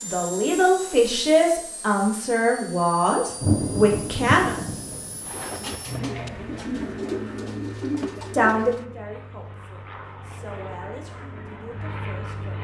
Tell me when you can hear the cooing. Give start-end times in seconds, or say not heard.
5.2-8.8.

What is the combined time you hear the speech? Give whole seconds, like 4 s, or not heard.
9 s.